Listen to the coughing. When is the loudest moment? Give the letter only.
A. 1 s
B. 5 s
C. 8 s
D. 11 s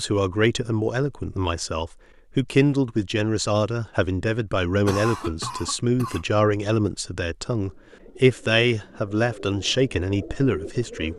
B.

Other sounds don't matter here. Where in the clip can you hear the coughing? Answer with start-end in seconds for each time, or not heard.
4.8-6.2.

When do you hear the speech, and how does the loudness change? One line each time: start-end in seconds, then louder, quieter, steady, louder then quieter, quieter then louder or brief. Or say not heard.
0.0-11.1 steady.